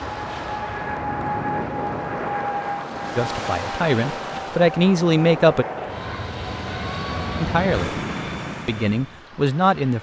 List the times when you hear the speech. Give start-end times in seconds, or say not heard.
3.1-5.7, 7.3-8.0, 8.7-9.9.